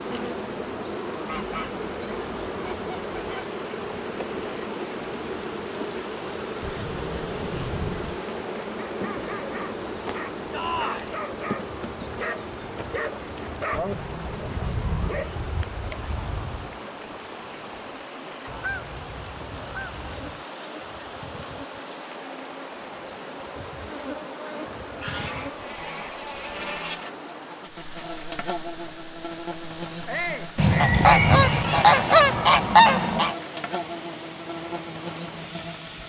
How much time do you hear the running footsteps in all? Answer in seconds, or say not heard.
not heard.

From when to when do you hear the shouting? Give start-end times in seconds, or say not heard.
10.5-11.1, 30.1-30.5.